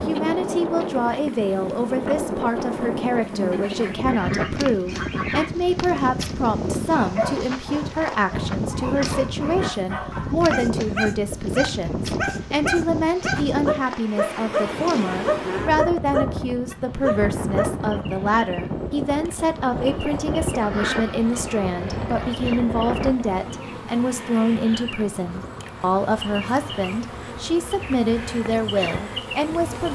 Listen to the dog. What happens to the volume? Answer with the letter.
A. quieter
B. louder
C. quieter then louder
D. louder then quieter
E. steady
B.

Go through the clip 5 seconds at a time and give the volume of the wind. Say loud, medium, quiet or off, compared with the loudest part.
loud, loud, loud, loud, loud, quiet.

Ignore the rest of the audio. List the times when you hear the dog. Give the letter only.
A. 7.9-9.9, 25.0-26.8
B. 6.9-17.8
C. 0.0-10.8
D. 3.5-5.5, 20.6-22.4
B.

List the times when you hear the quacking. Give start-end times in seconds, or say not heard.
3.5-5.5, 20.6-22.4.